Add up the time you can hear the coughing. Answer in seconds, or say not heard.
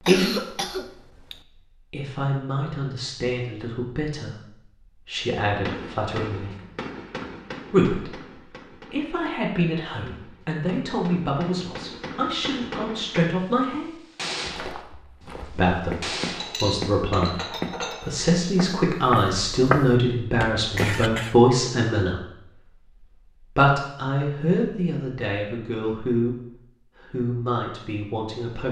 2 s.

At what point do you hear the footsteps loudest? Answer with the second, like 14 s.
20 s.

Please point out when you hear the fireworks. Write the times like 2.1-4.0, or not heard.
5.2-16.6.